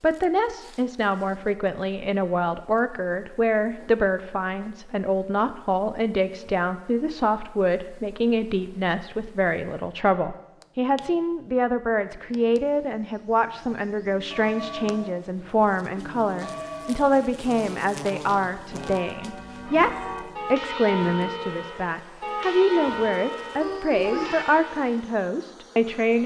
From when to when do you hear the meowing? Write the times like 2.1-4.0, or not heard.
23.6-24.4.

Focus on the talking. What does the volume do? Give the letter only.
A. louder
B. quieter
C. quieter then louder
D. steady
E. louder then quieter
D.